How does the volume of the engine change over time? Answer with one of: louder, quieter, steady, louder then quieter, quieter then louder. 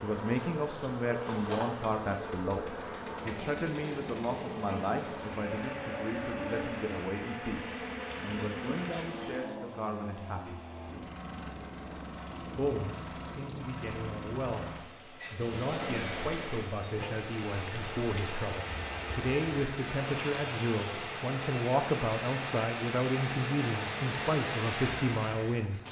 louder.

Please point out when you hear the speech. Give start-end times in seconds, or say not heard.
0.0-10.6, 12.6-25.8.